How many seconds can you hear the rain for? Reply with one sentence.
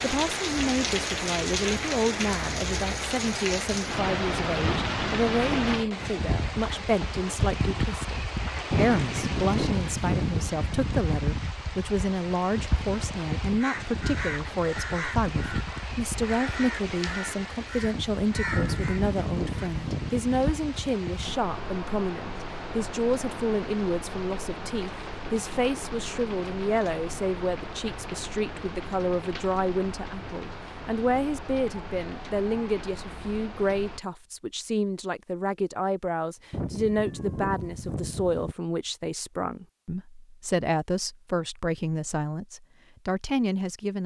You can hear the rain for 34 seconds altogether.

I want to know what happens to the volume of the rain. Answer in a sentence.
The loudness of the rain goes down.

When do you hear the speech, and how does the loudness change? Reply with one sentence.
The speech can be heard from 0.0 to 44.0 s, at a steady volume.